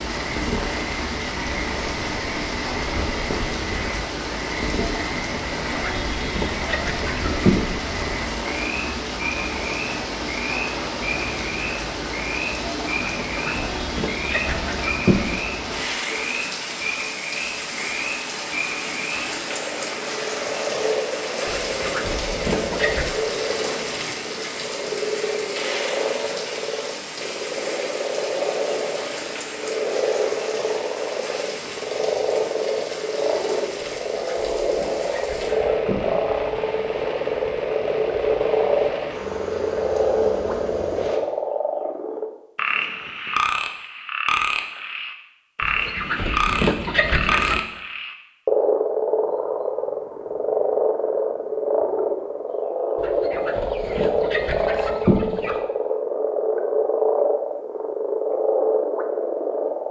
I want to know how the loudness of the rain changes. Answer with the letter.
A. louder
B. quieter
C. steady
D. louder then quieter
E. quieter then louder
B.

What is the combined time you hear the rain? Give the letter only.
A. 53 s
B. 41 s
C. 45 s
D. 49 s
B.